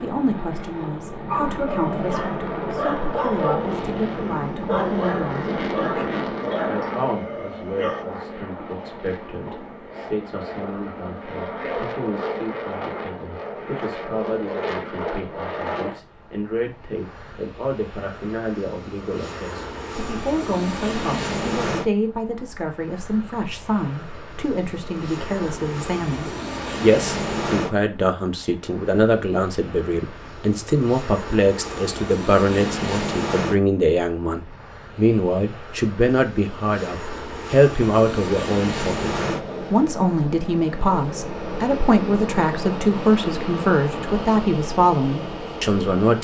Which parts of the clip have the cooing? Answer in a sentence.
You can't hear the cooing here.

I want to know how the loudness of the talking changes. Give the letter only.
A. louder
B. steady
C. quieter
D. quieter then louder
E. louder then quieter
A.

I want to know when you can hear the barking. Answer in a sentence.
The barking can be heard from 1.2 to 8.1 s.